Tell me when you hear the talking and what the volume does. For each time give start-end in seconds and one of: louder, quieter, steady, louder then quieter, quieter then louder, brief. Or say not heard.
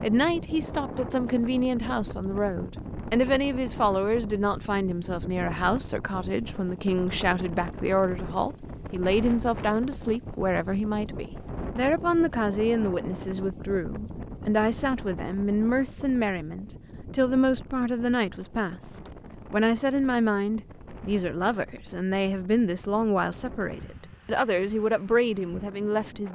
0.0-26.2 steady.